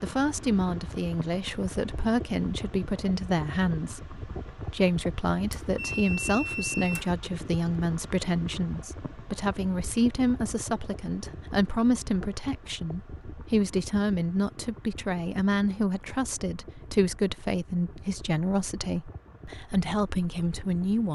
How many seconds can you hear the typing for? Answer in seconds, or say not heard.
not heard.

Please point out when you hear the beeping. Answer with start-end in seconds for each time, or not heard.
5.5-7.1.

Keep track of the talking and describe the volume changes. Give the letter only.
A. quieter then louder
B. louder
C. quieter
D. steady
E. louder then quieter
D.